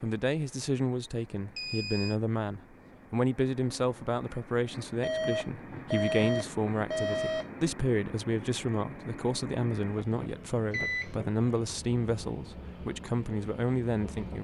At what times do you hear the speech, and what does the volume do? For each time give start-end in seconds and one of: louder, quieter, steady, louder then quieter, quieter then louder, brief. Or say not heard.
0.0-14.3 steady.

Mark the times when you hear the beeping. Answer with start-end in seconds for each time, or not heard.
1.6-2.1, 5.0-7.5, 10.7-11.2.